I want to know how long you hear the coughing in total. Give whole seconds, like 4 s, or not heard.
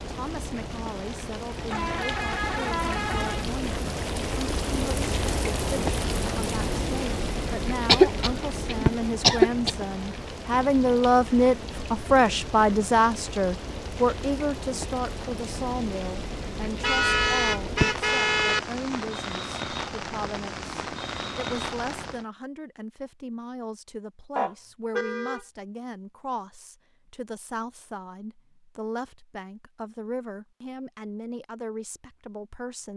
2 s.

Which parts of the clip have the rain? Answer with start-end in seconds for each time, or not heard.
0.0-22.2.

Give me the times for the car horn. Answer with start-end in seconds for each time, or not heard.
1.7-3.5, 16.8-18.6, 24.4-25.4.